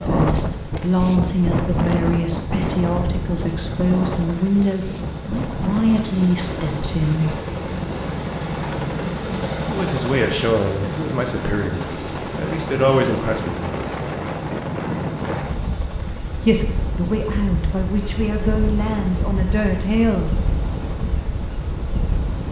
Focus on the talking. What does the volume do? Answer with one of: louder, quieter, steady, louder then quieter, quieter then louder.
steady.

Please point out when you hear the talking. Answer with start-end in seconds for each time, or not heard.
0.0-7.4, 9.7-13.7, 16.4-20.4.